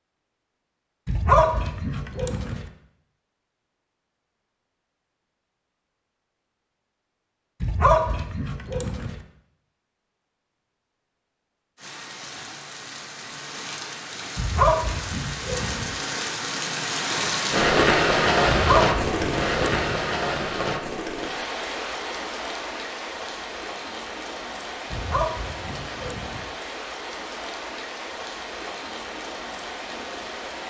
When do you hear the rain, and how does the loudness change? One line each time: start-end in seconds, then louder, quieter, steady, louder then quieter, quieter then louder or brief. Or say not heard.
11.8-30.6 louder then quieter.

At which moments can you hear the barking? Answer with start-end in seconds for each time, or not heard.
1.1-2.6, 7.6-9.2, 14.3-15.9, 18.4-20.0, 24.9-26.4.